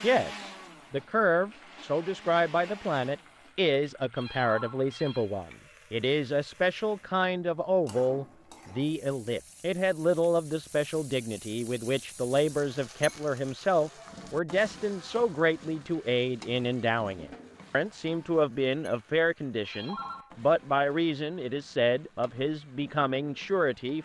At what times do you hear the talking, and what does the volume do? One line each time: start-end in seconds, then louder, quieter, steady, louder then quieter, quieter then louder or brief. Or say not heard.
0.0-24.0 steady.